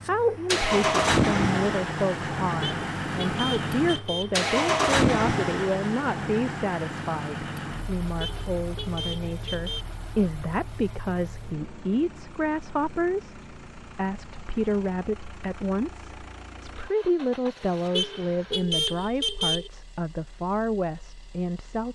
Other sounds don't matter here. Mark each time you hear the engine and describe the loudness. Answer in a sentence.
The engine can be heard from 0.0 to 21.9 s, getting quieter.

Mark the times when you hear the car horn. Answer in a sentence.
You can hear the car horn from 2.6 to 4.3 s, from 8.2 to 9.8 s and from 17.9 to 19.7 s.